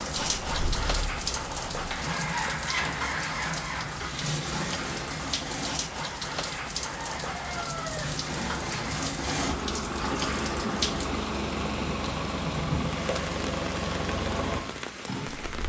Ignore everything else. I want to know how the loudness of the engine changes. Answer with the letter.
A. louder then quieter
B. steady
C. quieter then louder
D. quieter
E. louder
B.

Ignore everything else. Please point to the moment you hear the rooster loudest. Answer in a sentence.
The volume of the rooster peaks at 8 seconds.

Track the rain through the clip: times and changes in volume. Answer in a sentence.
You can hear the rain from 0.0 to 15.6 s, at a steady volume.